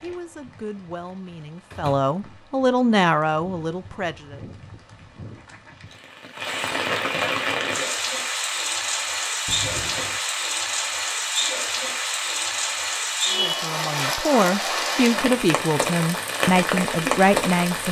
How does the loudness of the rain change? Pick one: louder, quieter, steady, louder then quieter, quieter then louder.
louder.